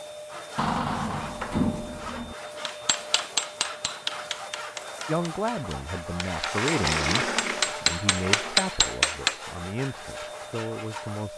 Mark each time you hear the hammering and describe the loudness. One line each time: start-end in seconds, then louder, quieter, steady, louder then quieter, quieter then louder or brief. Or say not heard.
2.6-9.4 quieter then louder.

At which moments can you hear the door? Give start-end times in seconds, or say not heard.
0.6-2.4, 6.2-8.6.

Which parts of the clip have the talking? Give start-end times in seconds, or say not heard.
5.0-11.3.